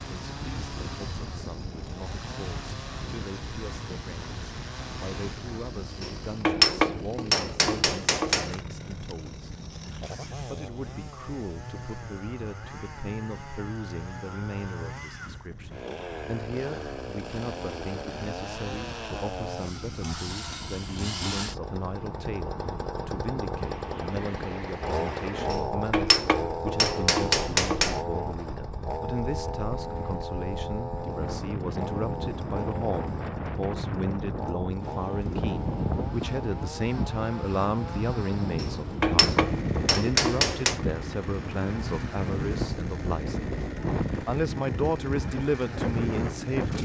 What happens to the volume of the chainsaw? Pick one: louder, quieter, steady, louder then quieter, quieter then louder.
louder then quieter.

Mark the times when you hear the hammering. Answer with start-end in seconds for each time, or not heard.
6.0-8.6, 25.5-28.1, 38.5-40.9.